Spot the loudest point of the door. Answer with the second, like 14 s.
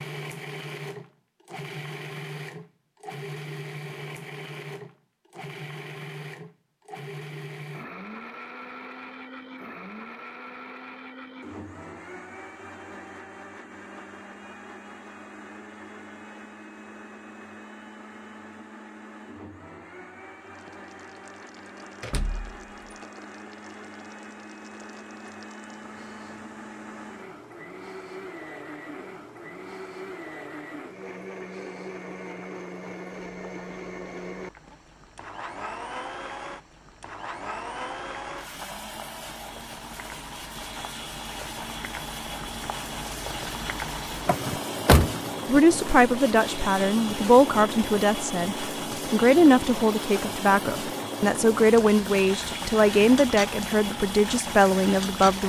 45 s.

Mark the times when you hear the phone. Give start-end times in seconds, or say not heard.
not heard.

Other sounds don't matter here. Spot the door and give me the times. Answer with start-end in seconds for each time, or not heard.
22.0-22.7, 44.2-45.6.